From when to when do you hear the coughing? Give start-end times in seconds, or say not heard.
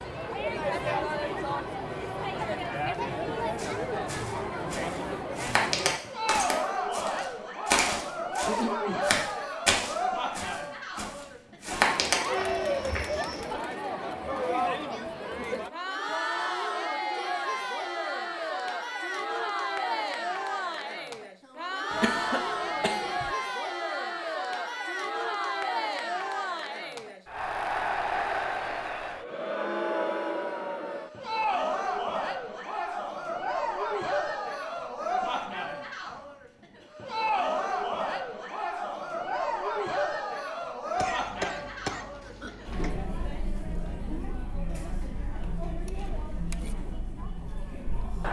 8.4-9.1, 21.9-23.3, 41.0-42.9.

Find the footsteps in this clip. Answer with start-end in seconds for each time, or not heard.
3.5-13.4.